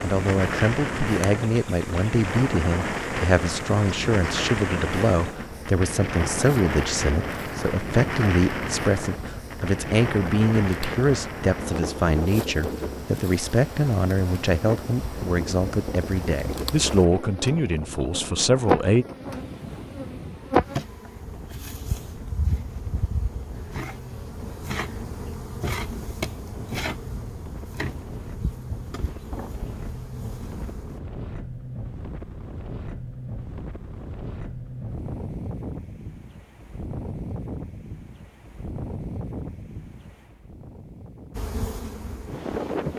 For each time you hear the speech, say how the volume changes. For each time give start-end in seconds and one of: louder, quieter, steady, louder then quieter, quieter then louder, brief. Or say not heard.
0.0-19.1 steady.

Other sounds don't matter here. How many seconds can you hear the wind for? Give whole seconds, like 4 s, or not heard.
43 s.